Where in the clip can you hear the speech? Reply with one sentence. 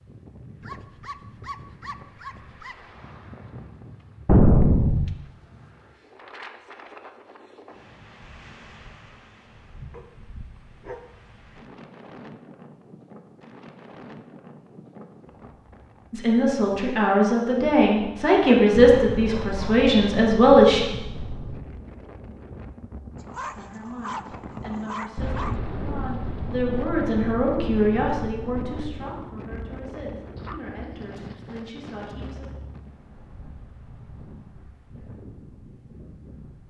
The speech can be heard from 16.1 to 20.8 s and from 23.5 to 32.5 s.